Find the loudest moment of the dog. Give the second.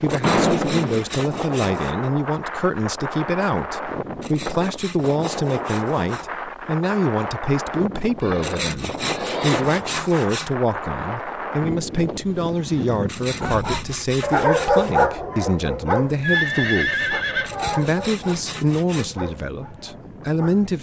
15 s.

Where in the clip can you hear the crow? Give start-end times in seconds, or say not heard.
not heard.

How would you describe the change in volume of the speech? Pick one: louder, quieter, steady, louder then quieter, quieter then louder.
steady.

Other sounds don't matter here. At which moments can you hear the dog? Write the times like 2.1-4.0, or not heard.
13.4-20.6.